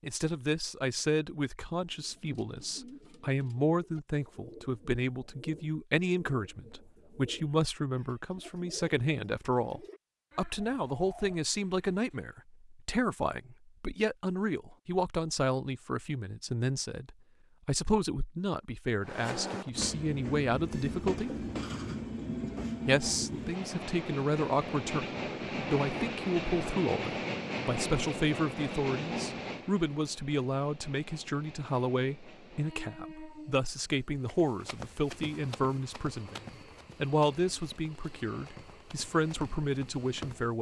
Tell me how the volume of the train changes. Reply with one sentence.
The volume of the train goes down.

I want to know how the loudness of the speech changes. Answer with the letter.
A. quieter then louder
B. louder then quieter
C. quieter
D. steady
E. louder
D.